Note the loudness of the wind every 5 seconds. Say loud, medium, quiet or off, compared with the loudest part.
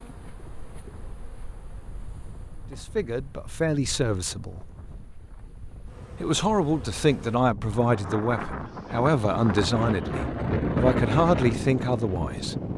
quiet, medium, loud.